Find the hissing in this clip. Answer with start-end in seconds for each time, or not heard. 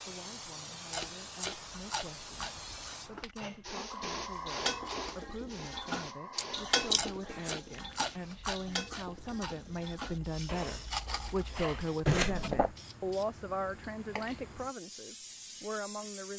0.0-16.3.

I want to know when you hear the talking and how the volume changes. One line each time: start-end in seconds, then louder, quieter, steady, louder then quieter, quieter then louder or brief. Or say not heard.
0.0-16.3 louder.